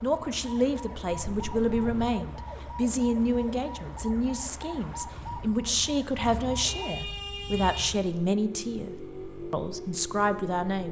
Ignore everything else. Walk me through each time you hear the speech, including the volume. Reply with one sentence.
The speech can be heard from 0.0 to 10.8 s, at a steady volume.